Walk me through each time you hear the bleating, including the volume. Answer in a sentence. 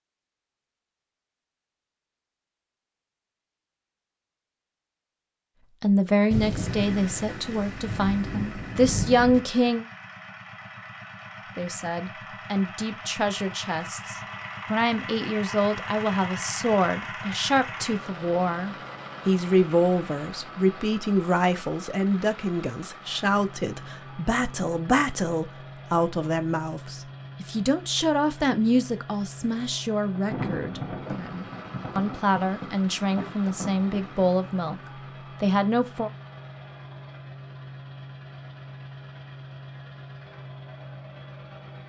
You can't hear the bleating here.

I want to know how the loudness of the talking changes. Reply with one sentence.
The loudness of the talking stays about the same.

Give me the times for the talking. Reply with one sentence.
You can hear the talking from 5.8 to 9.8 s and from 11.6 to 36.1 s.